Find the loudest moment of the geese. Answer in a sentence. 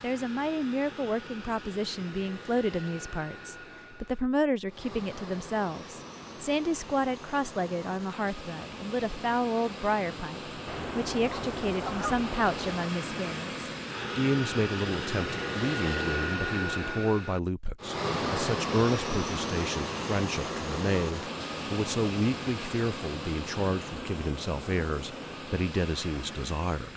The loudest moment of the geese is at 12 seconds.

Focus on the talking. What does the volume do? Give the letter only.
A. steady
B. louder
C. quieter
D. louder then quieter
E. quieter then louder
A.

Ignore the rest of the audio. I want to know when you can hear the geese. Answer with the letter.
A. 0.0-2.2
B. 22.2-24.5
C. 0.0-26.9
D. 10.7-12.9
D.